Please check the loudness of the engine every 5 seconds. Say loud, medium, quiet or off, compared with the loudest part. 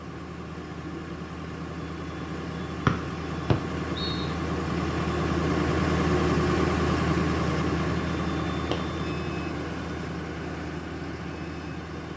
medium, loud, medium.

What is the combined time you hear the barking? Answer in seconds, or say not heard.
not heard.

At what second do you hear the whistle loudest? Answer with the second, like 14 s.
3 s.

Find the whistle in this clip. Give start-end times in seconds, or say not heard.
2.9-4.3.